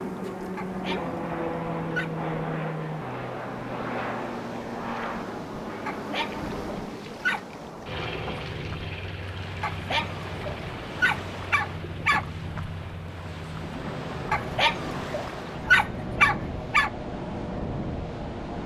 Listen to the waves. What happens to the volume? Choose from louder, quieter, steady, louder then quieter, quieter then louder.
louder.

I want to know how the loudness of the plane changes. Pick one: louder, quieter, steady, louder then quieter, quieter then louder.
quieter.